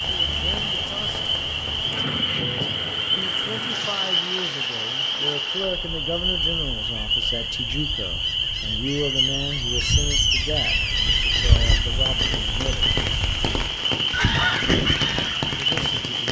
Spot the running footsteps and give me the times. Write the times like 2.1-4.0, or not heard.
not heard.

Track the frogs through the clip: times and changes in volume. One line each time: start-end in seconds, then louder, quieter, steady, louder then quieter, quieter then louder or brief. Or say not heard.
0.0-16.2 steady.